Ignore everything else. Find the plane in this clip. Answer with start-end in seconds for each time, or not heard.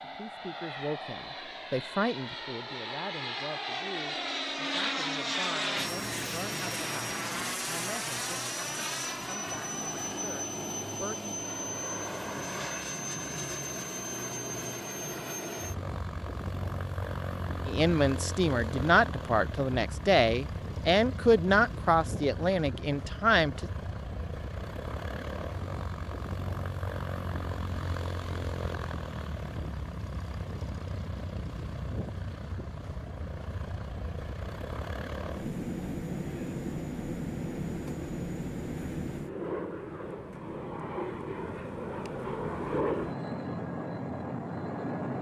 0.0-45.1.